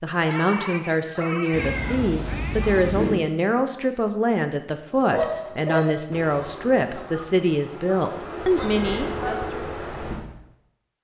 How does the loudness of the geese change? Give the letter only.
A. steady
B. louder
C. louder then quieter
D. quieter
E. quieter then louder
E.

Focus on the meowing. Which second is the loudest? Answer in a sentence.
The loudest moment of the meowing is at 3 seconds.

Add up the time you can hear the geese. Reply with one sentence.
The geese can be heard for 5 seconds in total.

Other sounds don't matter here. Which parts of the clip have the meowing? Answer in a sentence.
You can hear the meowing from 1.5 to 3.2 s and from 8.7 to 9.3 s.